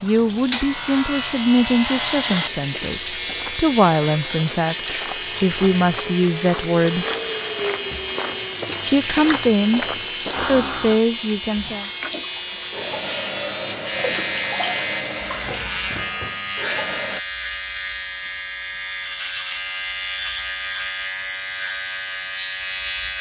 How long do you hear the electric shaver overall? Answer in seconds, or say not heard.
23 s.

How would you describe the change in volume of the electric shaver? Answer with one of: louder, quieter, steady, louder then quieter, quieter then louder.
steady.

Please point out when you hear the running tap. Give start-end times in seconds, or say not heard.
0.0-17.2.